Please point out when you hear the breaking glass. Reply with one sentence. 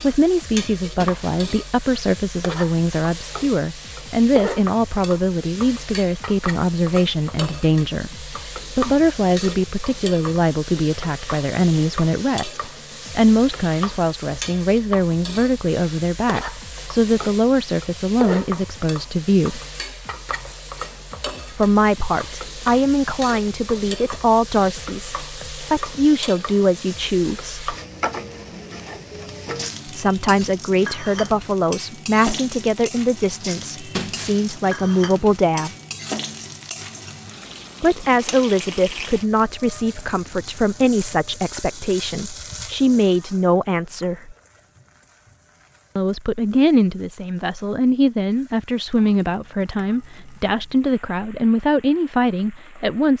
The breaking glass can be heard from 0.9 to 1.5 s and from 33.9 to 34.6 s.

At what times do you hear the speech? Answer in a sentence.
The speech can be heard from 0.0 to 19.6 s, from 21.5 to 27.7 s, from 29.9 to 35.7 s, from 37.8 to 44.4 s and from 46.0 to 53.1 s.